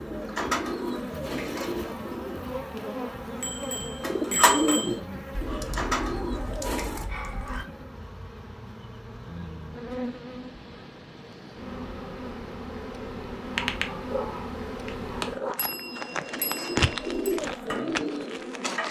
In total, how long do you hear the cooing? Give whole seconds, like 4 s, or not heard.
9 s.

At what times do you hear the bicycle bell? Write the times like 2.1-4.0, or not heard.
3.4-5.0, 15.6-17.4.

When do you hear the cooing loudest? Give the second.
5 s.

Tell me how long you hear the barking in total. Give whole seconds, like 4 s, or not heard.
4 s.